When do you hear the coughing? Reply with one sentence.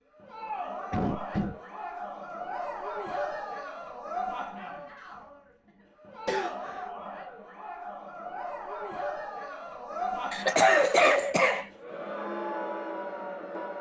The coughing can be heard from 0.9 to 1.6 s, from 6.2 to 6.8 s and from 10.3 to 11.7 s.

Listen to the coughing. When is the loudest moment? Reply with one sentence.
The volume of the coughing peaks at 11 seconds.